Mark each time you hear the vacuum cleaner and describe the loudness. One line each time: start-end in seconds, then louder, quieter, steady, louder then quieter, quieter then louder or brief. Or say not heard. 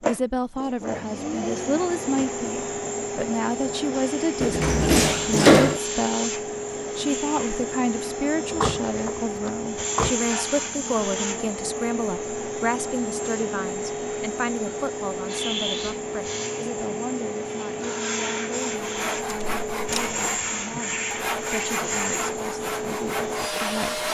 0.0-24.0 steady.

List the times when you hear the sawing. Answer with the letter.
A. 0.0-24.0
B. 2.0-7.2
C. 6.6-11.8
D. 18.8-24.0
D.